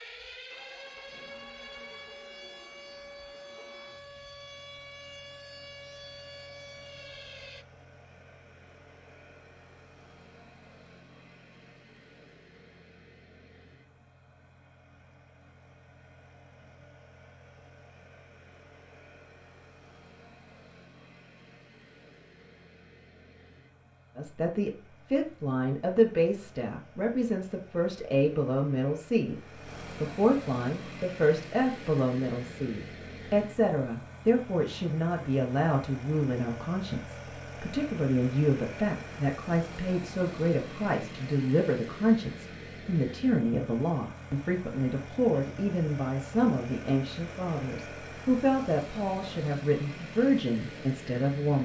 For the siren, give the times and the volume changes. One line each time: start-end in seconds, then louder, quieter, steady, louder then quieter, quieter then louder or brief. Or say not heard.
0.0-7.7 steady.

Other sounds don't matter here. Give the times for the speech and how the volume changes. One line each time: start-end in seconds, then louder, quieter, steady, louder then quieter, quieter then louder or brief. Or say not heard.
24.1-51.6 steady.